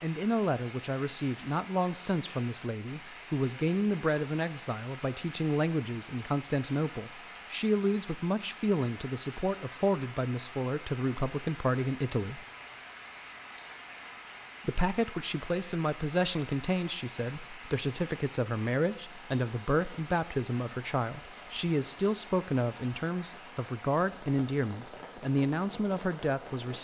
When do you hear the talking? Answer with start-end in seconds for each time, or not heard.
0.0-12.4, 14.7-26.8.